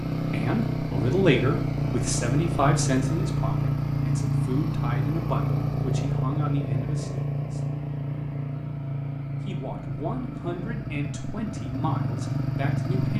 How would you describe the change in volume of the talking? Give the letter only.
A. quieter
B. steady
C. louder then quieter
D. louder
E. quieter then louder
A.